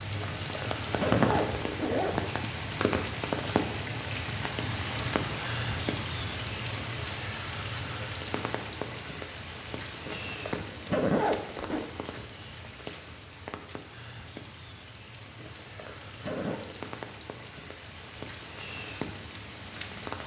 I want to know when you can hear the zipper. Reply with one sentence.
The zipper can be heard from 0.1 to 2.2 s, from 10.1 to 11.8 s and from 15.3 to 16.6 s.